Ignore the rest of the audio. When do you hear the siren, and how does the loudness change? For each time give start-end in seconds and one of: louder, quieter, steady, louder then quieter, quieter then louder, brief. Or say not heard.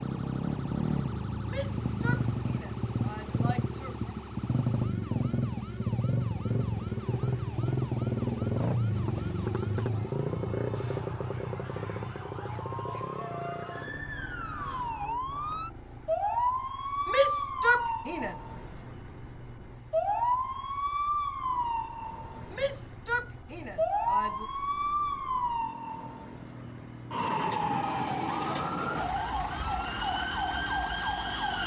0.0-31.6 louder.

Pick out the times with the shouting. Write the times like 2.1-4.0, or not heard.
1.4-4.1, 17.1-18.4, 22.5-24.4.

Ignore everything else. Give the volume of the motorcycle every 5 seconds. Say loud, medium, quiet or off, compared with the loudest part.
loud, loud, medium, quiet, quiet, quiet, quiet.